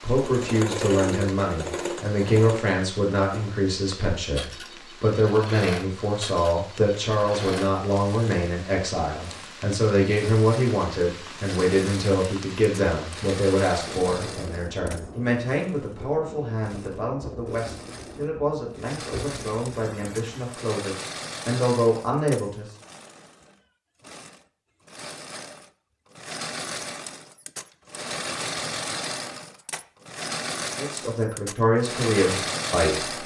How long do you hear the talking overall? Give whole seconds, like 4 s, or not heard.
25 s.